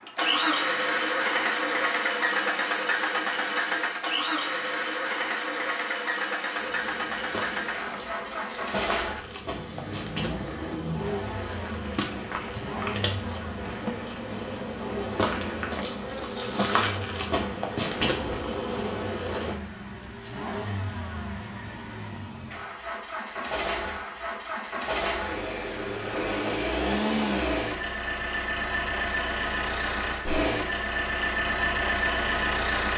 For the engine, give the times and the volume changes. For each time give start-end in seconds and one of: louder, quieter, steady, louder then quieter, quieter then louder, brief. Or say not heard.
0.1-32.9 quieter then louder.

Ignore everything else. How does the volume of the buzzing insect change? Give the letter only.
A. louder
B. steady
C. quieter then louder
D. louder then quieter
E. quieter
A.